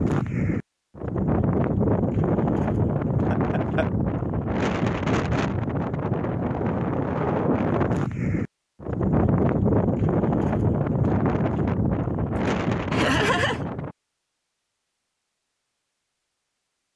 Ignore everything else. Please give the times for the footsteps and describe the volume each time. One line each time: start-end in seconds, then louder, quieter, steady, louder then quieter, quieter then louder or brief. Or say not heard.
not heard.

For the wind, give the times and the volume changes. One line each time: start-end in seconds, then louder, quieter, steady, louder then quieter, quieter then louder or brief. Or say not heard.
0.0-13.9 steady.